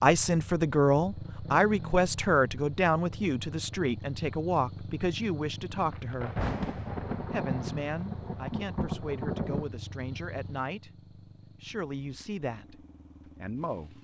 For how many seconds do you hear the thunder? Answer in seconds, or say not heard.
4 s.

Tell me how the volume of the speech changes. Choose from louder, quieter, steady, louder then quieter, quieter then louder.
quieter.